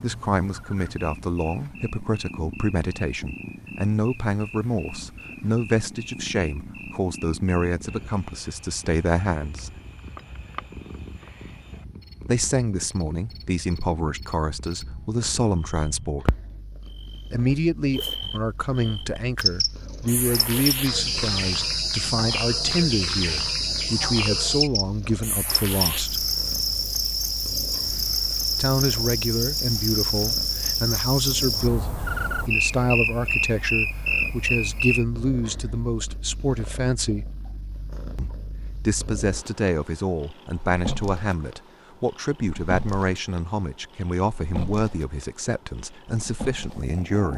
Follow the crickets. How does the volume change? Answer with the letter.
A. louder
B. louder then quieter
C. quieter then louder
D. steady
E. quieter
A.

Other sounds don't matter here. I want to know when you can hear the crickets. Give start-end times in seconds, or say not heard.
0.0-35.0.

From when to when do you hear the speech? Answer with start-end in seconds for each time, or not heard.
0.0-9.7, 12.2-16.3, 17.3-26.2, 28.5-37.3, 38.1-47.3.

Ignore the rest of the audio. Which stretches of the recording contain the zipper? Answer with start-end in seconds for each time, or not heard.
not heard.